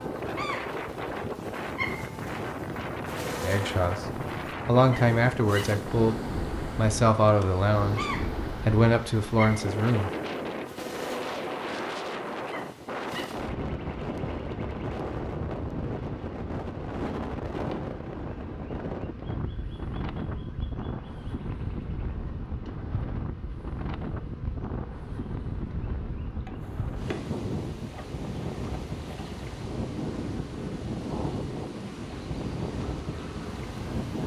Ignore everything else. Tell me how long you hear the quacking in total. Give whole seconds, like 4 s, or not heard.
not heard.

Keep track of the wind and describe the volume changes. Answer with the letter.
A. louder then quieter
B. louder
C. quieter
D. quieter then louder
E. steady
E.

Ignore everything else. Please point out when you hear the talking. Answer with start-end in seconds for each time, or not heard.
3.4-10.1.